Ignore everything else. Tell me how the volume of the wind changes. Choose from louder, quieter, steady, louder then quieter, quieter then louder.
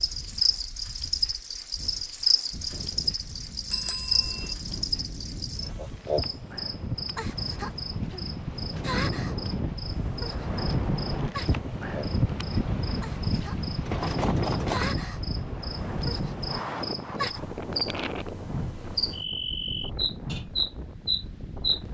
louder then quieter.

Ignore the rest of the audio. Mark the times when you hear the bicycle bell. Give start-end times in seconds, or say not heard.
3.7-4.5, 13.8-14.9.